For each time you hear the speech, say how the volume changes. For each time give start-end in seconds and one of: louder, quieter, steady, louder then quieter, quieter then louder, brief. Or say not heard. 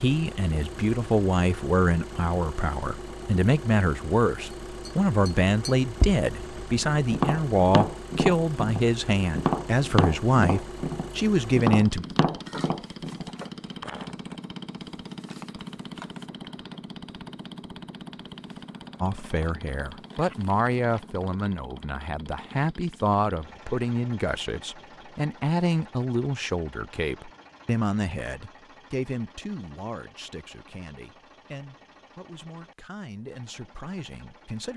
0.0-12.1 steady
19.0-34.7 quieter.